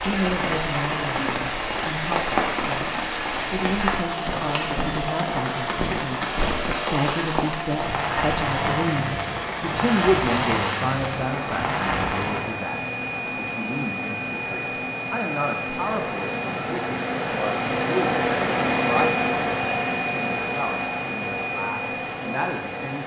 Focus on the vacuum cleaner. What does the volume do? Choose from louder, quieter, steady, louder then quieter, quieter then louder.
louder.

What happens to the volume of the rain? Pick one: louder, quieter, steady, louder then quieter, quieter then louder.
steady.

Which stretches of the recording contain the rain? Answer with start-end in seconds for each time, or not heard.
0.0-12.6.